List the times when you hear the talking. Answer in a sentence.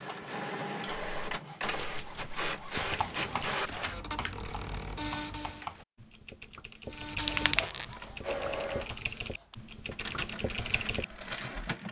You can't hear the talking here.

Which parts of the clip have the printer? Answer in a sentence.
The printer can be heard from 0.0 to 5.7 s and from 6.8 to 11.8 s.